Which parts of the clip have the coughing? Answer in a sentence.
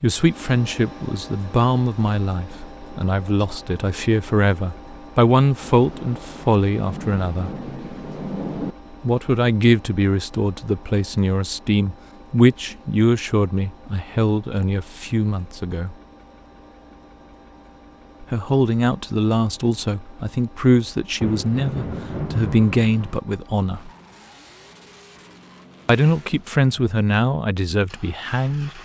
The coughing can't be heard in this clip.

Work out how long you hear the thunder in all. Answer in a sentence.
The thunder can be heard for 5 seconds in total.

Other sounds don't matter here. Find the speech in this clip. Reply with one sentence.
You can hear the speech from 0.0 to 7.5 s, from 9.0 to 15.9 s, from 18.2 to 23.9 s and from 25.9 to 28.8 s.